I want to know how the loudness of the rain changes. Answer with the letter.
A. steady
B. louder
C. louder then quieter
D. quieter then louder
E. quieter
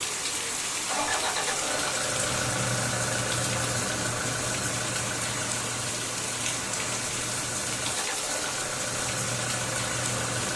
A.